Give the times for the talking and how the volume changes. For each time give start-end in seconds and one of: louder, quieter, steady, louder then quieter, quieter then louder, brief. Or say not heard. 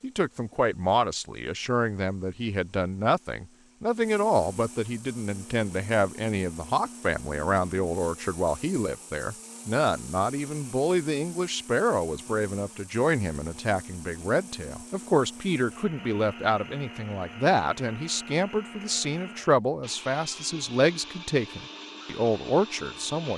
0.0-23.3 steady.